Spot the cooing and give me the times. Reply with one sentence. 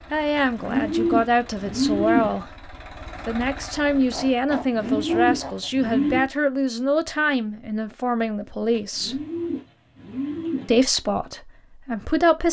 The cooing can be heard from 0.3 to 2.5 s, from 4.5 to 6.2 s and from 8.7 to 10.8 s.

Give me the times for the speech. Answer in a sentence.
The speech can be heard from 0.1 to 9.2 s and from 10.7 to 12.4 s.